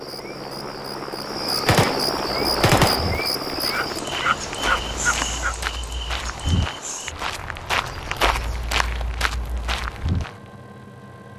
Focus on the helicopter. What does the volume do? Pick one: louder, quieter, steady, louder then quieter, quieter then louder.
quieter.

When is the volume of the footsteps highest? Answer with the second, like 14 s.
8 s.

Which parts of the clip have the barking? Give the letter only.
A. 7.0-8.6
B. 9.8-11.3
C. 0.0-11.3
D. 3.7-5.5
D.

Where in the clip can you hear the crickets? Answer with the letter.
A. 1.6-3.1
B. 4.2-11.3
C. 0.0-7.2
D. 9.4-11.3
C.